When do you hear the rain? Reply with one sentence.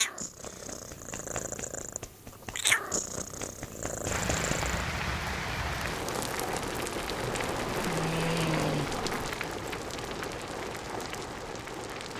You can hear the rain from 4.0 to 12.1 s.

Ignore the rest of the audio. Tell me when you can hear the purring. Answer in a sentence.
You can hear the purring from 0.0 to 4.8 s.